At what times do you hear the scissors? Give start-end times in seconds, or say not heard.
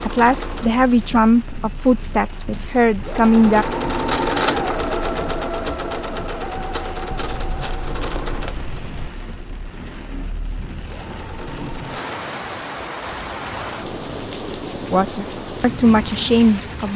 7.1-9.1.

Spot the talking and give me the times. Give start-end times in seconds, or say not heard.
0.0-3.6, 14.9-16.9.